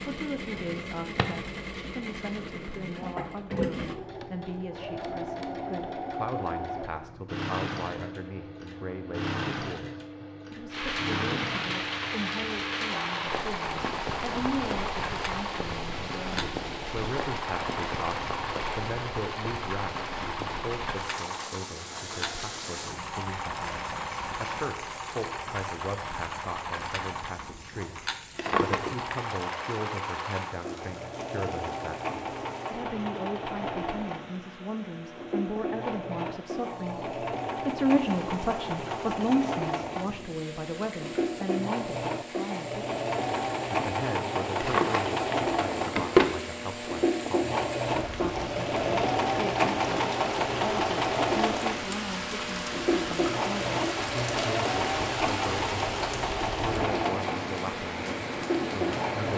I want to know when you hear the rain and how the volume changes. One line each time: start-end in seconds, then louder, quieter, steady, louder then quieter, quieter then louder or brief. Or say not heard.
10.7-59.3 quieter then louder.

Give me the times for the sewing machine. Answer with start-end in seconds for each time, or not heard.
0.0-59.3.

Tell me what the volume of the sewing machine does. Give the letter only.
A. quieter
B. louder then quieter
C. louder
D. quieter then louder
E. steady
C.